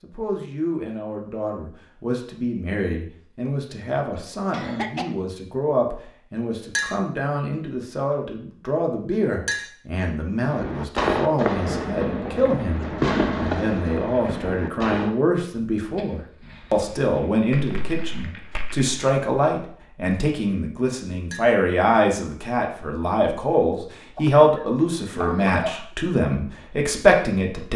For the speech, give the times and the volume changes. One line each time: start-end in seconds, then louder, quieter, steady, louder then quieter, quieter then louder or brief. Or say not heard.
0.0-27.7 louder.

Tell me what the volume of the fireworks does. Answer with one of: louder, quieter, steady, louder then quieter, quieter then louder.
quieter then louder.